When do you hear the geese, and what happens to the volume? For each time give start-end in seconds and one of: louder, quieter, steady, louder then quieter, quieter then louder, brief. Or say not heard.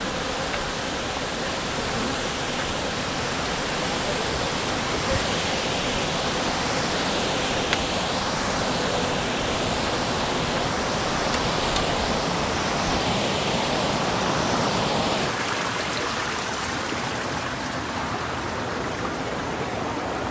not heard.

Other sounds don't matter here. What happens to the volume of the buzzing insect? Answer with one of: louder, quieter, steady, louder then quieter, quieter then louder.
steady.